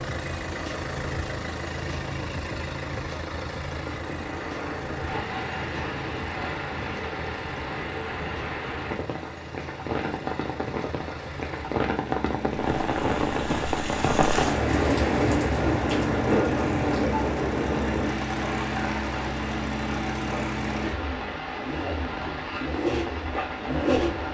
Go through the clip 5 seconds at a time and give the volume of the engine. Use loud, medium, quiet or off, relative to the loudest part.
loud, medium, medium, loud, loud.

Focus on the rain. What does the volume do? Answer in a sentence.
The loudness of the rain goes up, then down.